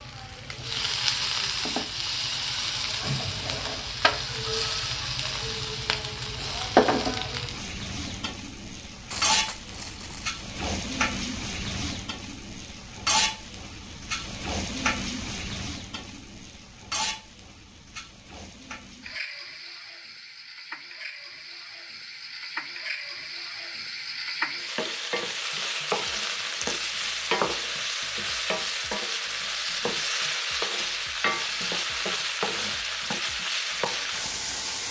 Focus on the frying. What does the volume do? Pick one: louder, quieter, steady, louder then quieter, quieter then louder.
quieter then louder.